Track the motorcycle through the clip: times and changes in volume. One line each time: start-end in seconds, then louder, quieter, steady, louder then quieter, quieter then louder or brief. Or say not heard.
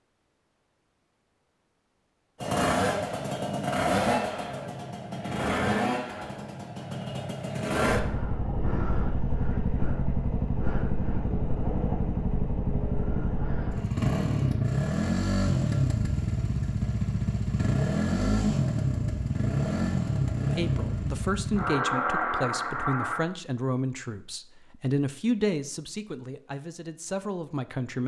2.4-23.2 steady.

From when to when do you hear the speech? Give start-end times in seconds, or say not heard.
20.5-28.0.